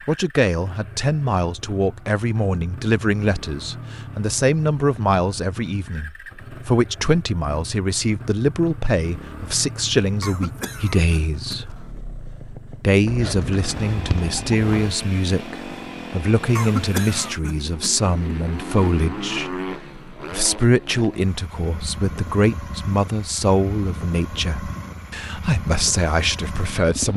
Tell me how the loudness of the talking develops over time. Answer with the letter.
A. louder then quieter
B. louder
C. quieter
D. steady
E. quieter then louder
D.